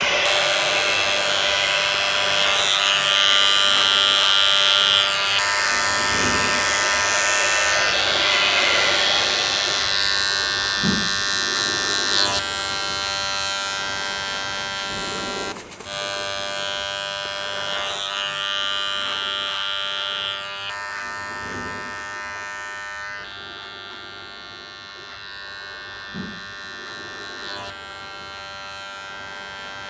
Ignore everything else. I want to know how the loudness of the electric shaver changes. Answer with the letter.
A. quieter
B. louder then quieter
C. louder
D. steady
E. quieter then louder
A.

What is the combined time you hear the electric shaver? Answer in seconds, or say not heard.
30 s.